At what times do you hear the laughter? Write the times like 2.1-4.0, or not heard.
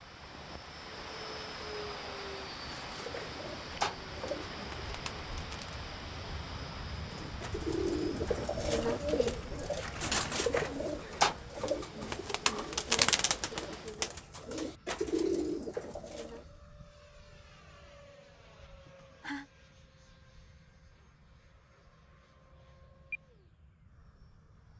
18.9-19.4.